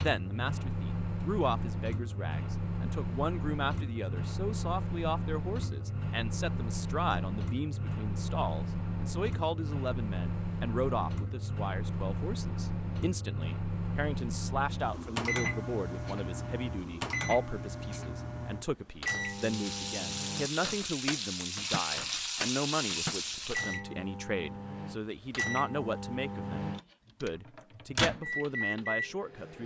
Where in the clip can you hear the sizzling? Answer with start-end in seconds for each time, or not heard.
19.1-23.8.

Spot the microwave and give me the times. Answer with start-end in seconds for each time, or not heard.
0.0-29.6.